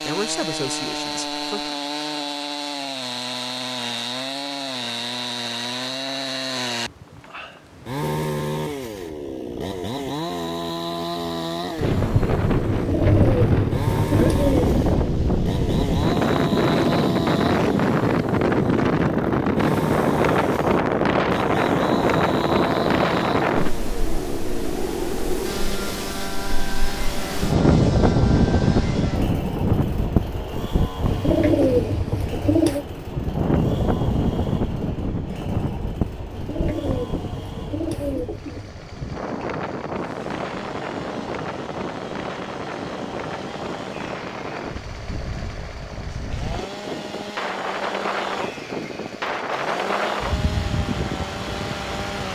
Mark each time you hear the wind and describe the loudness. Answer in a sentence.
The wind can be heard from 11.8 to 52.3 s, getting quieter.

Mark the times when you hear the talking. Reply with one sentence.
You can hear the talking from 0.0 to 1.8 s.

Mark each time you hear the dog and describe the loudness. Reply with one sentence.
The dog can't be heard in this clip.